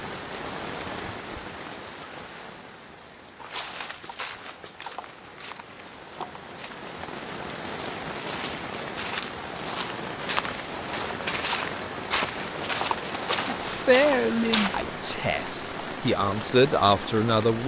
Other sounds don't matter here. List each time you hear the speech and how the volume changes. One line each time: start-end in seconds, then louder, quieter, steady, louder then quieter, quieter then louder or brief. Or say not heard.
13.4-17.6 quieter then louder.